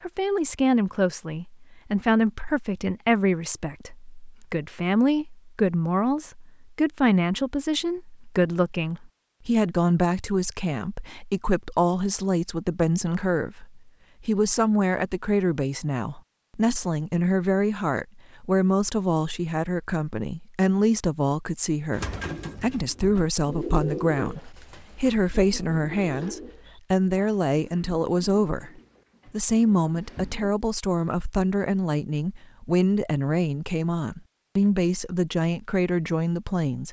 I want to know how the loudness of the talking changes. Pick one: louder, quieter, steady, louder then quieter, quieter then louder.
steady.